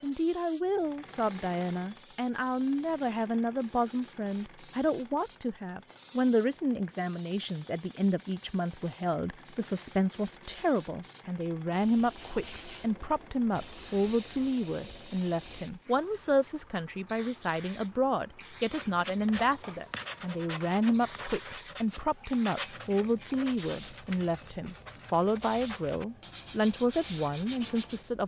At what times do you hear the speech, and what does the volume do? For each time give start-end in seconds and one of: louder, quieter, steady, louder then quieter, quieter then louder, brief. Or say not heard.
0.0-28.2 steady.